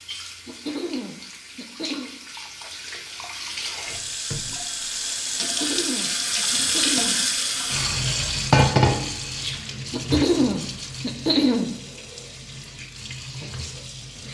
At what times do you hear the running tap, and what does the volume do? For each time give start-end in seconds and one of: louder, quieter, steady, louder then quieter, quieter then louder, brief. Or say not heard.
0.0-14.2 louder then quieter.